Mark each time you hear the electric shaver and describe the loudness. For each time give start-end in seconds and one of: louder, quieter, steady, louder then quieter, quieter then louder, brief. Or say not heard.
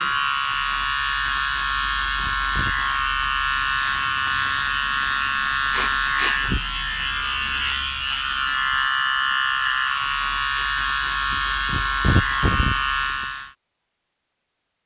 0.0-13.6 steady.